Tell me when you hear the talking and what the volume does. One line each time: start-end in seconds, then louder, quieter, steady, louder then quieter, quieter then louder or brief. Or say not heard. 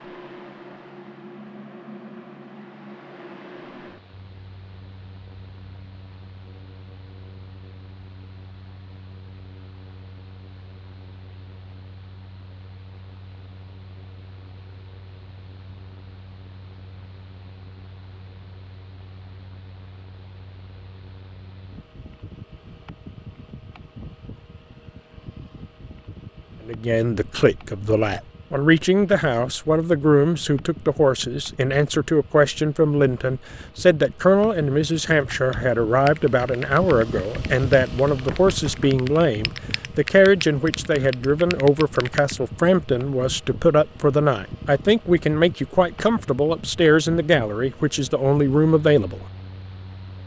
26.6-49.2 steady.